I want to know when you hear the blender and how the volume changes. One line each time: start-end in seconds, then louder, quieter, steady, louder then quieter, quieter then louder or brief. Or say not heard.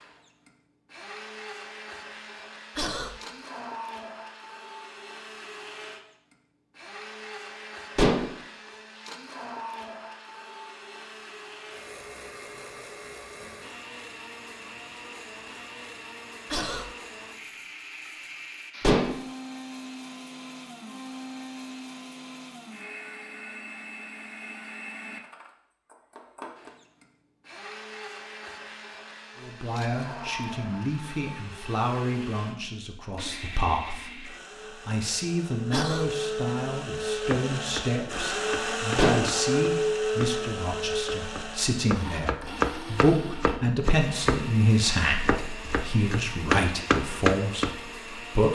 0.0-48.5 louder.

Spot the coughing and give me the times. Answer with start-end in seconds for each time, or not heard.
2.8-3.2, 16.5-16.9, 35.7-36.1.